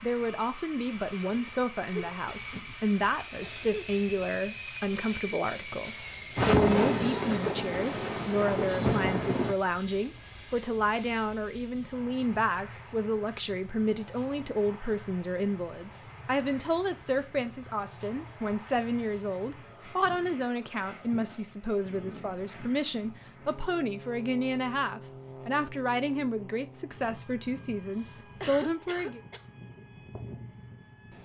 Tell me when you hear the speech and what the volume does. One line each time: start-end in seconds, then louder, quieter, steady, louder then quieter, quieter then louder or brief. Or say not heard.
0.0-29.2 steady.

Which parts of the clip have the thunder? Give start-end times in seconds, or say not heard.
6.3-9.6.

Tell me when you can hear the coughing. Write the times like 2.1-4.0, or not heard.
1.9-3.9, 28.0-29.4.